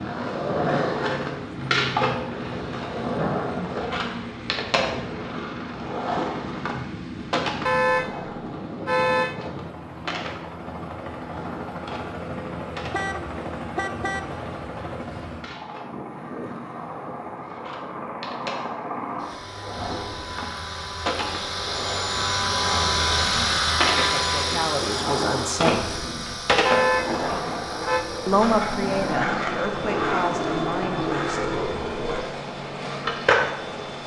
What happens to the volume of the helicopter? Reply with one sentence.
The volume of the helicopter goes up, then down.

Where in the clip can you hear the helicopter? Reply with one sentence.
You can hear the helicopter from 0.0 to 34.0 s.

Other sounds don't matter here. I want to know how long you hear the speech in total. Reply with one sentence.
The speech can be heard for 5 seconds in total.